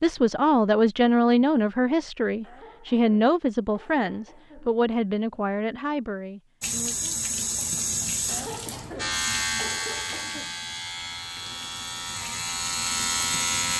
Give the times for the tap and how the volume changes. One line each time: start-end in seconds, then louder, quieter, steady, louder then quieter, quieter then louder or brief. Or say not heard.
6.6-13.7 quieter then louder.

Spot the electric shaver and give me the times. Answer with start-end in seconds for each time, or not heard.
8.9-13.7.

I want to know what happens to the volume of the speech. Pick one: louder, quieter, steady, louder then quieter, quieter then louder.
quieter.